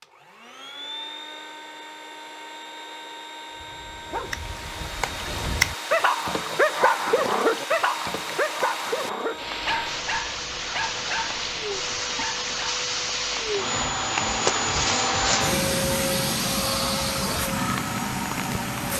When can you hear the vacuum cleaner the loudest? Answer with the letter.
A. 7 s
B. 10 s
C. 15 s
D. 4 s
C.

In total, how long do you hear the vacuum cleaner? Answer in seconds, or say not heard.
19 s.